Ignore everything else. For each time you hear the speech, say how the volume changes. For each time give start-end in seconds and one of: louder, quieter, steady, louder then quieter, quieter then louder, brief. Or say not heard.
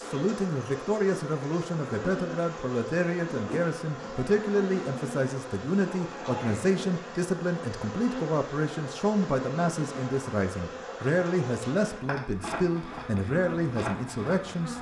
0.0-14.7 steady.